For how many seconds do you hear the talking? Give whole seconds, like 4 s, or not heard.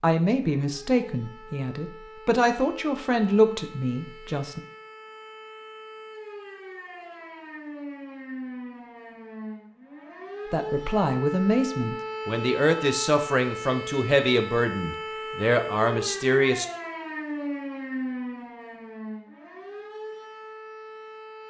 11 s.